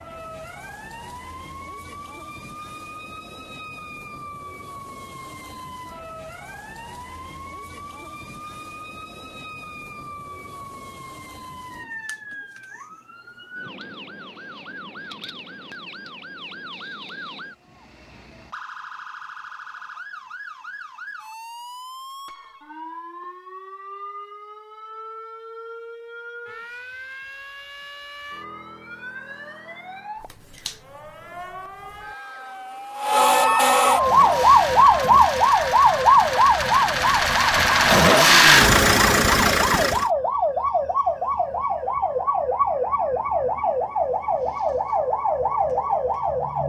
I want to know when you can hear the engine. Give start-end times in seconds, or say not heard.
33.9-40.1.